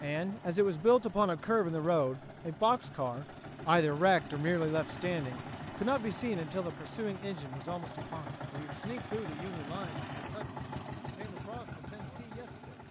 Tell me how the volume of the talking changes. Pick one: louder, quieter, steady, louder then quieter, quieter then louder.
quieter.